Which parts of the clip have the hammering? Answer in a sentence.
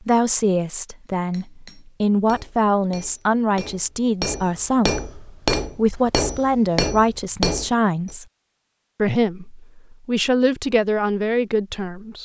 You can hear the hammering from 1.1 to 8.2 s.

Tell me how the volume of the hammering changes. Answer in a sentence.
The loudness of the hammering goes up.